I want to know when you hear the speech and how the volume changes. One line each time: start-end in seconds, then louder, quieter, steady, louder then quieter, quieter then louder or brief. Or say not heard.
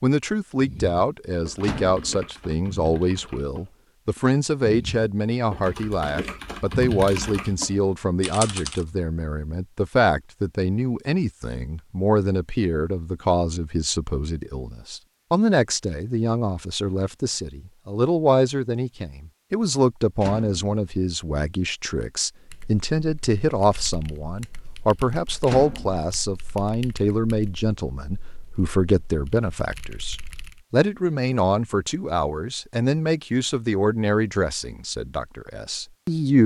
0.0-36.4 steady.